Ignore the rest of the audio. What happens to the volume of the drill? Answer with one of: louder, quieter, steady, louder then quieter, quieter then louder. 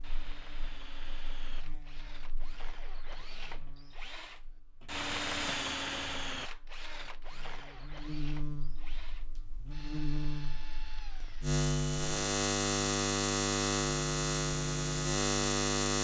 louder then quieter.